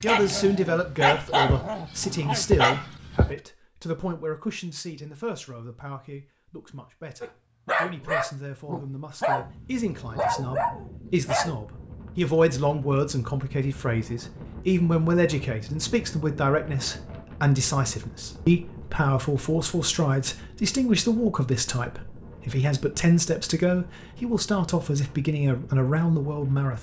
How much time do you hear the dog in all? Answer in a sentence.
The dog can be heard for 8 seconds in total.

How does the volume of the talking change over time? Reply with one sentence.
The loudness of the talking goes down, then up.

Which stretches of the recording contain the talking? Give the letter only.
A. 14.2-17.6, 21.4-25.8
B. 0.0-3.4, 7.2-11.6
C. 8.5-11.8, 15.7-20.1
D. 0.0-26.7
D.